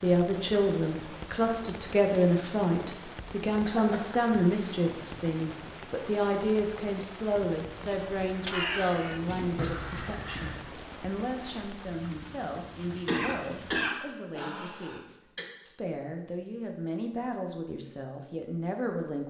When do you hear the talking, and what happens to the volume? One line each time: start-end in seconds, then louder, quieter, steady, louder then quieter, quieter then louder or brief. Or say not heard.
0.0-19.2 quieter.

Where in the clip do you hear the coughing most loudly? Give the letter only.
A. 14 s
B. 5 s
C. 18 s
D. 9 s
A.